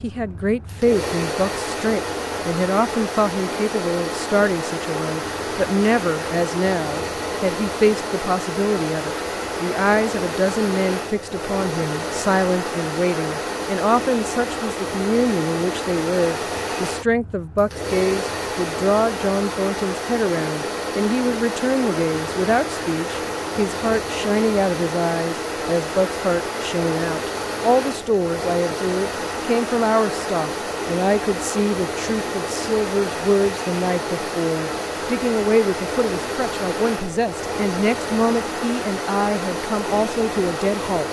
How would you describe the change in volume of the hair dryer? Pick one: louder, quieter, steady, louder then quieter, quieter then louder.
steady.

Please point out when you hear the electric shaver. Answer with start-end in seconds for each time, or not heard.
not heard.